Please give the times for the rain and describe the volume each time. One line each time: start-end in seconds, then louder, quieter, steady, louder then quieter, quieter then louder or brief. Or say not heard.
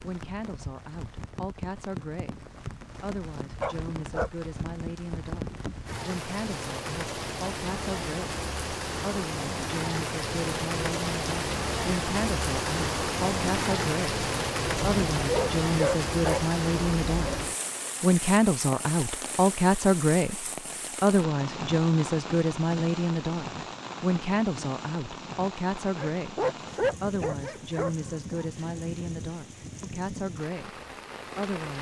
0.0-31.7 louder then quieter.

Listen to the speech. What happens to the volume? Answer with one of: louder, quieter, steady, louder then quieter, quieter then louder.
louder then quieter.